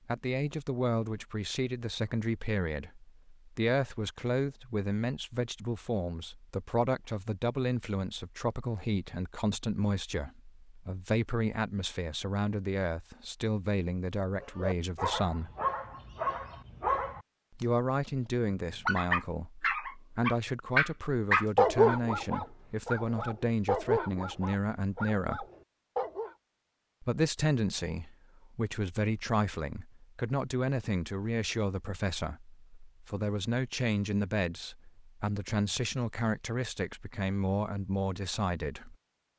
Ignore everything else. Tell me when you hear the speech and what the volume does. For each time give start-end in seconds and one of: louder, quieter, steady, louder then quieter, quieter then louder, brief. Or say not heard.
0.1-15.5 steady
17.6-25.4 steady
27.0-39.0 steady.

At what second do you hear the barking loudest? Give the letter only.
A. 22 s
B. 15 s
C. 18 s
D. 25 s
A.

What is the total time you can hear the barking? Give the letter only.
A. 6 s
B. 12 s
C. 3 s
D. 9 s
B.